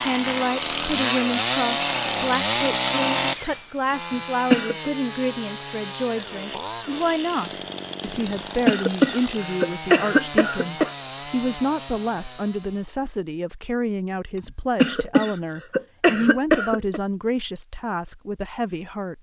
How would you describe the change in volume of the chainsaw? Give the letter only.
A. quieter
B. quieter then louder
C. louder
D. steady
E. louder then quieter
A.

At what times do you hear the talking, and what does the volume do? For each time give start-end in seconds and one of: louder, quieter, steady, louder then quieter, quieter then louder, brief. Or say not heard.
0.0-19.1 steady.